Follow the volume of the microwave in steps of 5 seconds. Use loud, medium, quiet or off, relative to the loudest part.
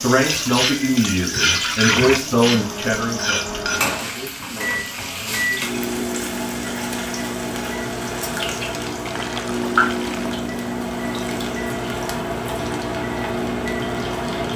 medium, loud, loud.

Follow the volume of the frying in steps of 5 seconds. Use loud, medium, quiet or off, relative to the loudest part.
loud, loud, medium.